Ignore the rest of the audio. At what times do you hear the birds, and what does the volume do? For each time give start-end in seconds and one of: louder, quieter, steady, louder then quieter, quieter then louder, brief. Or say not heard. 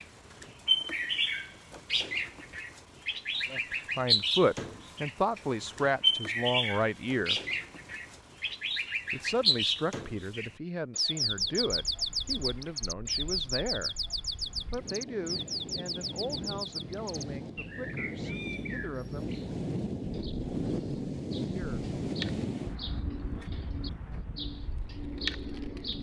0.0-25.9 quieter.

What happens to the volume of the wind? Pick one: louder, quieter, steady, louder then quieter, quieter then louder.
louder then quieter.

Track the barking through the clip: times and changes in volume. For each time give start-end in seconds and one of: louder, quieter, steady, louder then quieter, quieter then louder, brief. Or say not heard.
not heard.